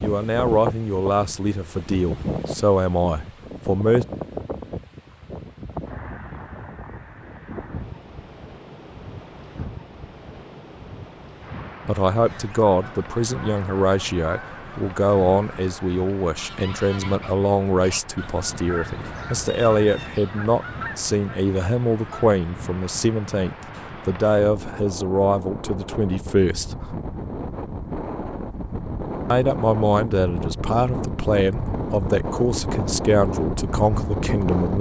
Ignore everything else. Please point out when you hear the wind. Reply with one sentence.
You can hear the wind from 0.0 to 34.7 s.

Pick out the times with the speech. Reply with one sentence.
The speech can be heard from 0.0 to 4.0 s, from 11.8 to 26.9 s and from 29.3 to 34.7 s.